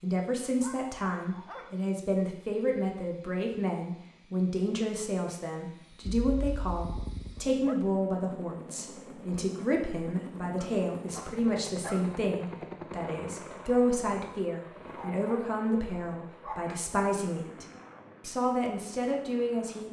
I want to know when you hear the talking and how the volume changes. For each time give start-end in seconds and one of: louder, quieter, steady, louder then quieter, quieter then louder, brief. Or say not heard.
0.0-19.8 steady.